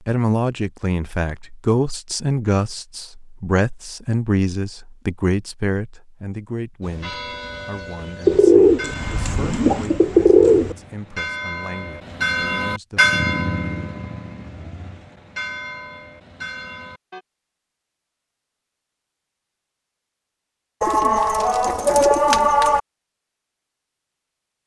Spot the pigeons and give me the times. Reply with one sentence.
You can hear the pigeons from 8.2 to 10.8 s and from 20.8 to 22.8 s.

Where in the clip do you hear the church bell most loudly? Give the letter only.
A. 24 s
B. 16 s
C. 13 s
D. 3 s
C.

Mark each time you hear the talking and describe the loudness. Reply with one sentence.
You can hear the talking from 0.1 to 13.0 s, getting quieter.